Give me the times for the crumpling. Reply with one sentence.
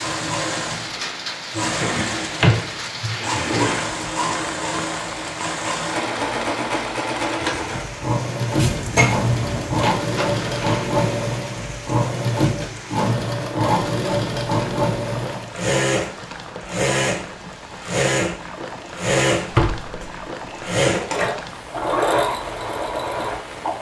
The crumpling can be heard from 9.8 to 10.9 s.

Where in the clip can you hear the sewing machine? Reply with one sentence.
You can hear the sewing machine from 0.0 to 23.7 s.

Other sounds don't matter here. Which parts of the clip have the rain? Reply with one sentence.
The rain can be heard from 0.0 to 23.7 s.